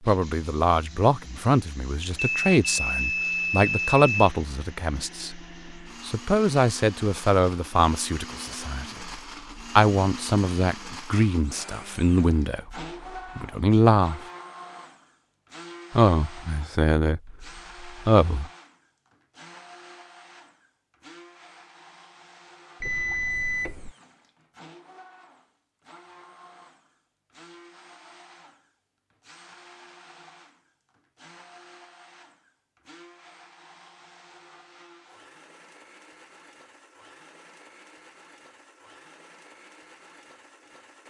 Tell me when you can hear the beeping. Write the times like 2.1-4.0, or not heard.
2.0-4.3, 22.8-23.9.